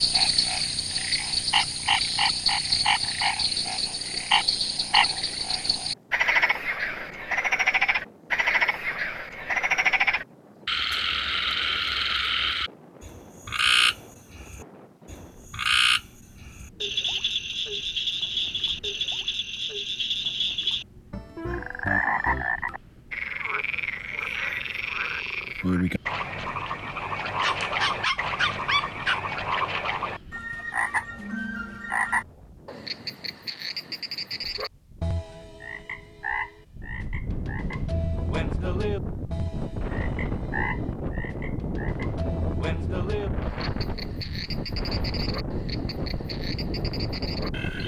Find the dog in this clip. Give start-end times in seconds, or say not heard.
27.4-29.2.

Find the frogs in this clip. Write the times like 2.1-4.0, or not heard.
0.0-47.8.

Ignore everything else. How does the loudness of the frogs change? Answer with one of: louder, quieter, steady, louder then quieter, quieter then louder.
quieter.